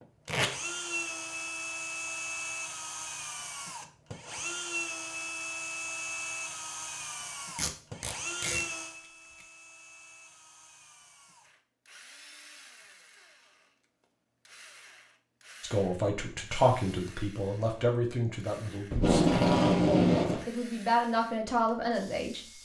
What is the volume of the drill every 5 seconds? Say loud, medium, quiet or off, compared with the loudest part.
loud, loud, quiet, quiet, quiet.